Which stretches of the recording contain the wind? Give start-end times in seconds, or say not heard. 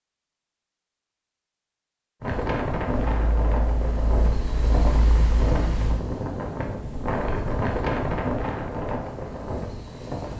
2.2-10.3.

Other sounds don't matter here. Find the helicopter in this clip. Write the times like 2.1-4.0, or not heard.
3.1-6.0.